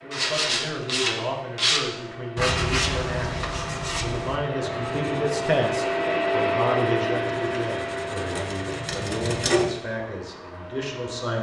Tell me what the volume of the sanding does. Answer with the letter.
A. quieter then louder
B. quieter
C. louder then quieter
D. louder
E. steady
A.